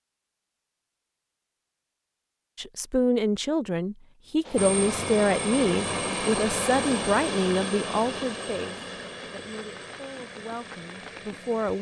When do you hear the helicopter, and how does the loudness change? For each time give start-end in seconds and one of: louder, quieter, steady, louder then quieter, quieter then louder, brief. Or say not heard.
4.5-11.7 quieter.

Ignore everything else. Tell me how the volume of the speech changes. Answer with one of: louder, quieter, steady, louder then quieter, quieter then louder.
quieter.